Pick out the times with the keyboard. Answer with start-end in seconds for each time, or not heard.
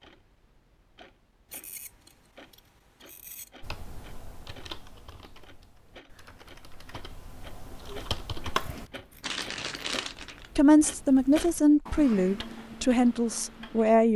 3.6-8.9.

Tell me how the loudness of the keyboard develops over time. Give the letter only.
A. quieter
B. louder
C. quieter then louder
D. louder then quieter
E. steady
C.